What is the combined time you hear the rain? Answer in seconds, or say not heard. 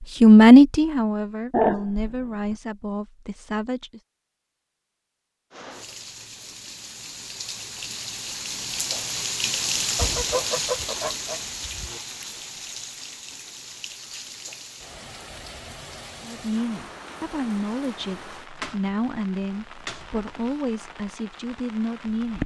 17 s.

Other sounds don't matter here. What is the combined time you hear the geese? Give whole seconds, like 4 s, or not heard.
2 s.